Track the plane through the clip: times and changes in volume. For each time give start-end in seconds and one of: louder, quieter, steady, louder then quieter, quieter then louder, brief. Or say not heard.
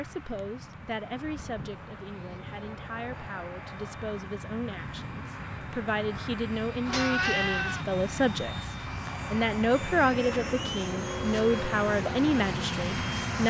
0.0-13.4 louder.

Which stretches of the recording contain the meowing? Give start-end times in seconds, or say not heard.
6.8-7.8.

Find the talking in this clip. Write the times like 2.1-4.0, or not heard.
0.0-8.7, 9.3-13.4.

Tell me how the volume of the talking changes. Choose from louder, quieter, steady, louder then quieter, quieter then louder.
louder.